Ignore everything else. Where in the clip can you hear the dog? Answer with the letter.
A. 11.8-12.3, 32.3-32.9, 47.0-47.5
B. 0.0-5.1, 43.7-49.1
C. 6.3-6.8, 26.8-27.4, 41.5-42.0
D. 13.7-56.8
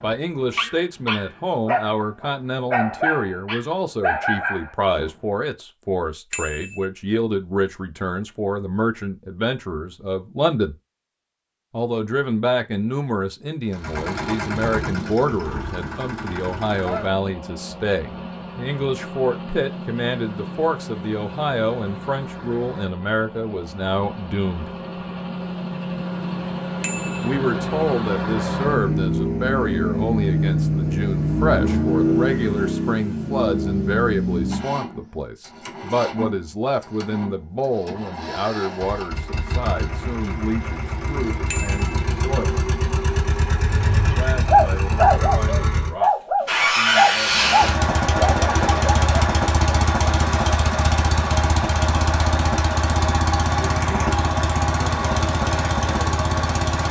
B.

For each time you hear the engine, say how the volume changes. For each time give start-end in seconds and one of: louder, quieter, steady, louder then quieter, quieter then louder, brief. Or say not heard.
13.7-56.8 louder.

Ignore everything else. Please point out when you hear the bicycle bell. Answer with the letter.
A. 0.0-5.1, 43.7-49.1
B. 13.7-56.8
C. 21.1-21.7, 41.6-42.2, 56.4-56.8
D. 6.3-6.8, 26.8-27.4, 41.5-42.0
D.